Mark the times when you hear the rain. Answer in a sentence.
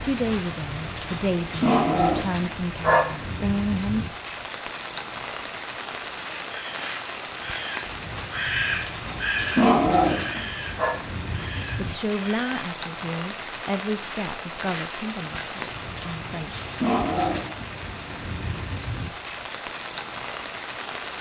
The rain can be heard from 0.0 to 21.1 s.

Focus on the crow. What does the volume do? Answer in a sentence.
The volume of the crow goes up, then down.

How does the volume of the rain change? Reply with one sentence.
The loudness of the rain stays about the same.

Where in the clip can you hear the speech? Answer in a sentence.
The speech can be heard from 0.0 to 4.0 s and from 11.8 to 16.6 s.